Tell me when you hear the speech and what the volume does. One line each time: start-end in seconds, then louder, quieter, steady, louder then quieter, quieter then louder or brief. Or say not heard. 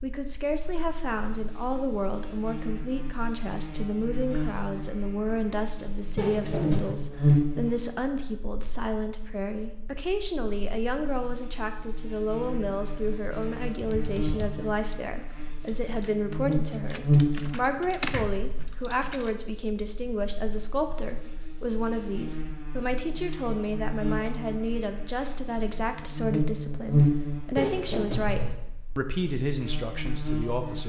0.0-30.8 steady.